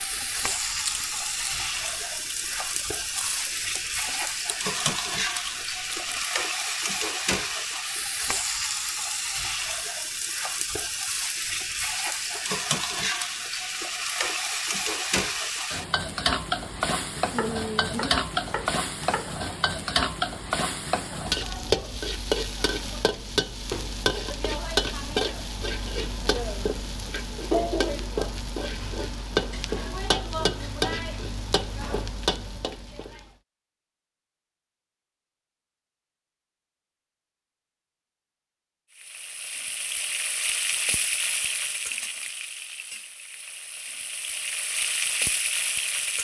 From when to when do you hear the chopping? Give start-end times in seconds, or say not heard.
17.1-19.4.